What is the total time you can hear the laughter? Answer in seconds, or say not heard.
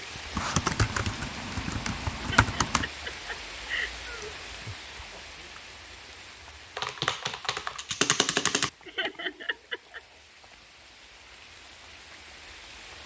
3 s.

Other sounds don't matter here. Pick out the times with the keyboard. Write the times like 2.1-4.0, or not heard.
0.3-2.9, 6.8-8.7.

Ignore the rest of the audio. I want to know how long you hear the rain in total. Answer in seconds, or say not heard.
13 s.